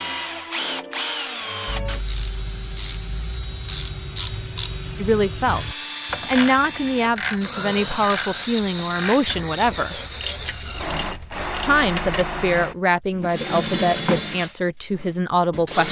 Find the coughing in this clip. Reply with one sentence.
You can't hear the coughing here.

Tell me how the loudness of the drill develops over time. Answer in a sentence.
The loudness of the drill stays about the same.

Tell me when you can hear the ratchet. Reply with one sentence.
You can hear the ratchet from 1.6 to 12.2 s.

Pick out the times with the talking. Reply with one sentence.
You can hear the talking from 5.0 to 9.9 s and from 11.7 to 15.8 s.